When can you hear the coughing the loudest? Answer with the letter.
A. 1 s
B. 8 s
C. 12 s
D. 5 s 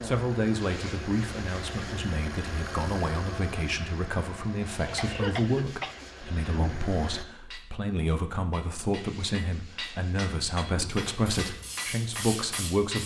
D.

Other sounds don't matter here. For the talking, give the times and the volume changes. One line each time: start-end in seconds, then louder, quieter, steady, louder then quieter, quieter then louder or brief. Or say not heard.
0.0-13.0 steady.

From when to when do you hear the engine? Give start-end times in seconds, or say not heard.
0.0-7.2.